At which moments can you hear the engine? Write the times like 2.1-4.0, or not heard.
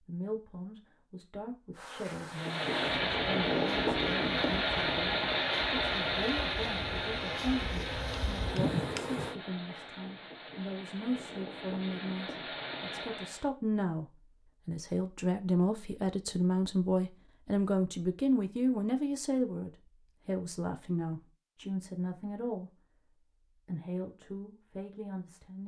2.2-13.5.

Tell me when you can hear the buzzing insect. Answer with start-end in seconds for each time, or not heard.
1.8-9.3.